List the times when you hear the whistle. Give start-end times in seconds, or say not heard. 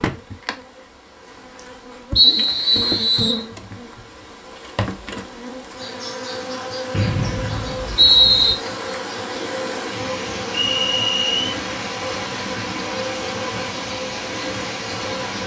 2.1-3.5, 6.9-8.6, 10.7-11.6.